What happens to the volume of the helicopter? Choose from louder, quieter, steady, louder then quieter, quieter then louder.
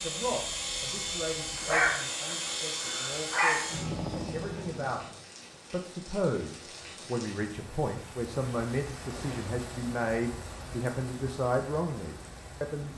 steady.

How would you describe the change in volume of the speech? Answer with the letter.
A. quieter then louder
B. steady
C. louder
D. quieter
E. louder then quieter
C.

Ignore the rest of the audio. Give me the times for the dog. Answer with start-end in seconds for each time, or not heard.
1.6-3.6.